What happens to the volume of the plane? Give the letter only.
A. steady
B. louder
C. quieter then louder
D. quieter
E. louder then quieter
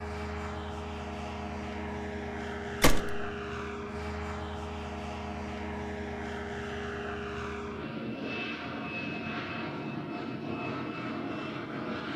A.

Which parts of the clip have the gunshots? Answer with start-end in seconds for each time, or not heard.
2.8-3.2.